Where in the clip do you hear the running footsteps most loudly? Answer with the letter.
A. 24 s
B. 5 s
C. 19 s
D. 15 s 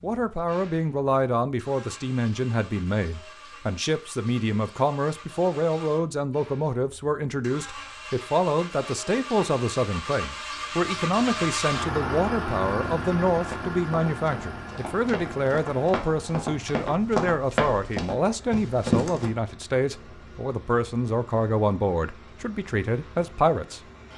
C.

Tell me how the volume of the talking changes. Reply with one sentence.
The loudness of the talking stays about the same.